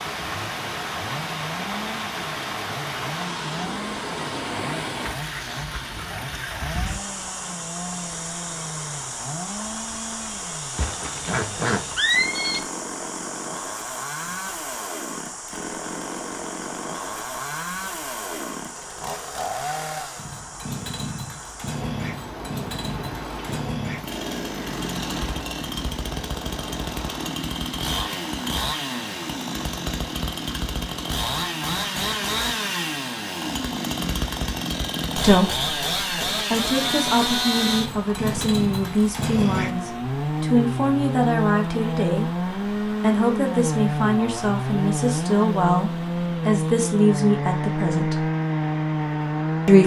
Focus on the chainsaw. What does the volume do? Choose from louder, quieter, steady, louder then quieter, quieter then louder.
louder.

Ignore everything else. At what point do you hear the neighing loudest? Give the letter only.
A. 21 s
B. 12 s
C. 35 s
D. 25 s
B.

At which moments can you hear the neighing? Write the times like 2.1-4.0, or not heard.
10.8-12.6.